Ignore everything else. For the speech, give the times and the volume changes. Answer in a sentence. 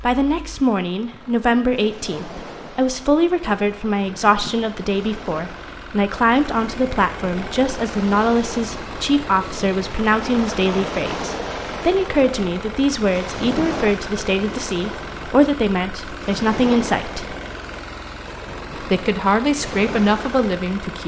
You can hear the speech from 0.0 to 17.4 s, at a steady volume; and briefly from 18.8 to 21.0 s.